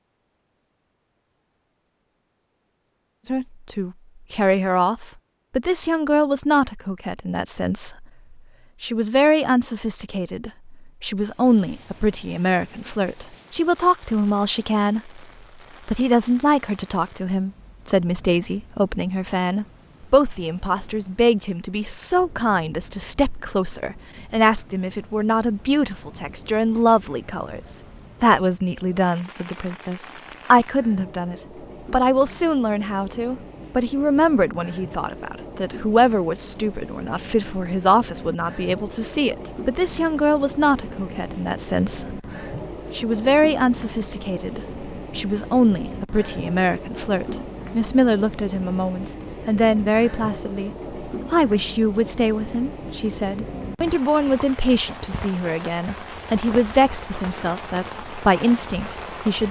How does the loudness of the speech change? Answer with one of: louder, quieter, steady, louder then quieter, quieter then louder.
steady.